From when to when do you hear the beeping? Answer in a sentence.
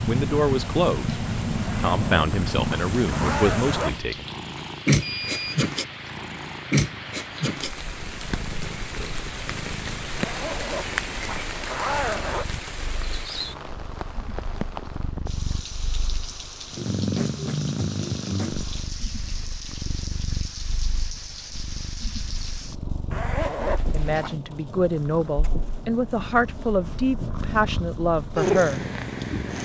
You can hear the beeping from 5.0 to 5.5 s.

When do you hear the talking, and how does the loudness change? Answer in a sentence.
The talking can be heard from 0.1 to 4.2 s, getting quieter then louder; and from 23.9 to 28.8 s, at a steady volume.